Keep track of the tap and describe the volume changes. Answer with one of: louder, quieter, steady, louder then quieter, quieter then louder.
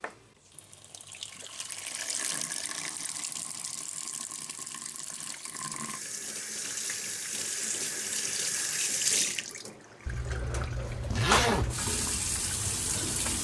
louder.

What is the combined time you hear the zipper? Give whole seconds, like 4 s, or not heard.
2 s.